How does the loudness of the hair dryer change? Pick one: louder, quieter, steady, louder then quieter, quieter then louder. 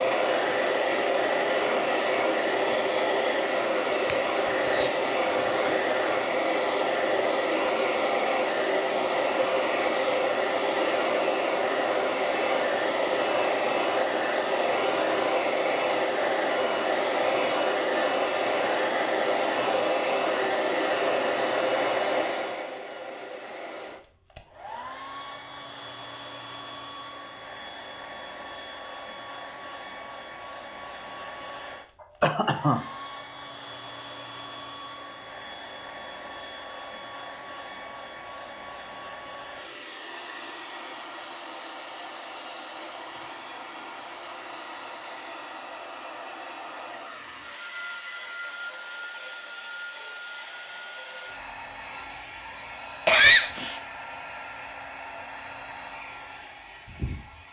quieter.